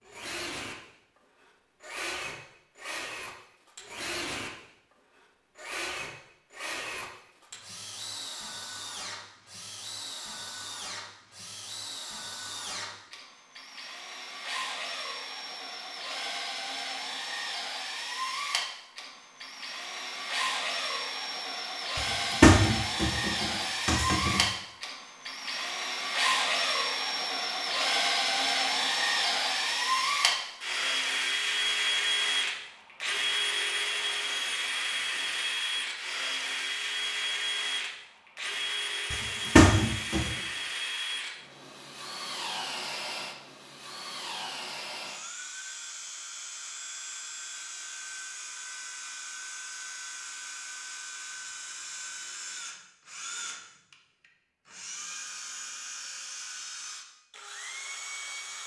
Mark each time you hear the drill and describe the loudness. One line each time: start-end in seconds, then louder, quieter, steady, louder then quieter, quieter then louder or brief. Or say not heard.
0.0-58.6 louder then quieter.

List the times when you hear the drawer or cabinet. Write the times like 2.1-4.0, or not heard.
21.9-24.4, 39.1-40.3.